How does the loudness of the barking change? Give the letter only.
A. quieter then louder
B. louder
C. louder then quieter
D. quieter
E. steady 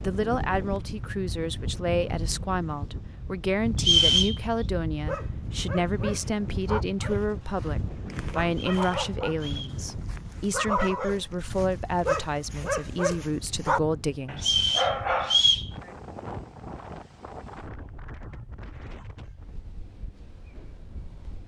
B.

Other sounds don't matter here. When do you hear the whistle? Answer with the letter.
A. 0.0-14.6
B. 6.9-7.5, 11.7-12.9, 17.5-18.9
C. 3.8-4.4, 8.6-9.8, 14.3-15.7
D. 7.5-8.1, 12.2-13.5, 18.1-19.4
C.